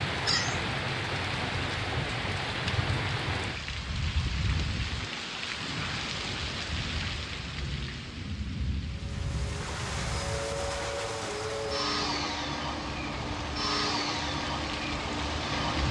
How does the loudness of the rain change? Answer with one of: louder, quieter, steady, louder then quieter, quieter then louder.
quieter.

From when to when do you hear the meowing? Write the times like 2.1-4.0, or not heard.
0.2-0.7.